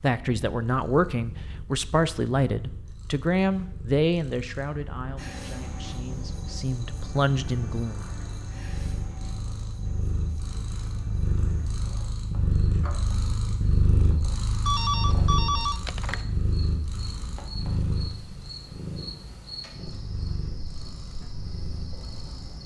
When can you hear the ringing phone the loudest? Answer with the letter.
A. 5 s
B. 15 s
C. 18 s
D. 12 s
B.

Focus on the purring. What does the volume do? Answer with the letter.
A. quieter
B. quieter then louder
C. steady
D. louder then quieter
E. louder
D.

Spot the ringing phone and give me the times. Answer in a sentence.
The ringing phone can be heard from 14.7 to 16.2 s.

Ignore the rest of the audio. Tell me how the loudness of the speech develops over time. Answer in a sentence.
The loudness of the speech goes down, then up.